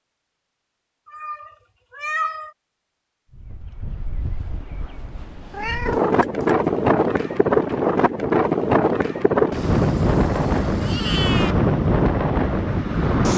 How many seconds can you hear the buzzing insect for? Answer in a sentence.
You can't hear the buzzing insect here.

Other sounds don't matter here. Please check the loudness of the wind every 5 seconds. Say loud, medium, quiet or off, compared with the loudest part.
quiet, loud, loud.